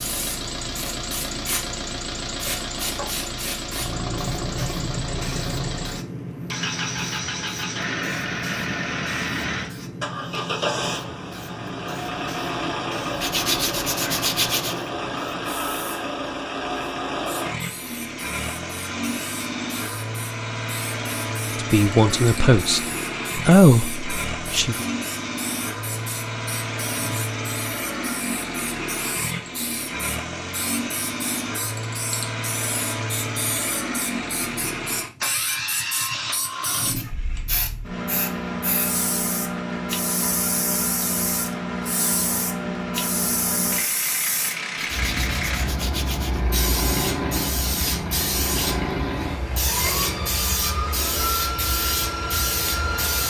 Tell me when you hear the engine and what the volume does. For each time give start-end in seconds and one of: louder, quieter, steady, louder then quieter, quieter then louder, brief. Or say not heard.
0.0-53.2 steady.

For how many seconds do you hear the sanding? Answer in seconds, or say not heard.
3 s.